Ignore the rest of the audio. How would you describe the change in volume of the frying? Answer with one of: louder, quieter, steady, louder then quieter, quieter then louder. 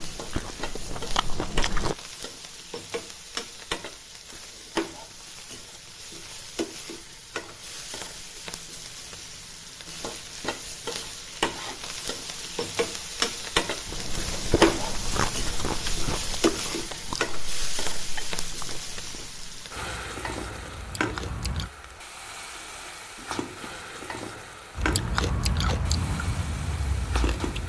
louder then quieter.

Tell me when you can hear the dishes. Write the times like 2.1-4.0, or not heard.
not heard.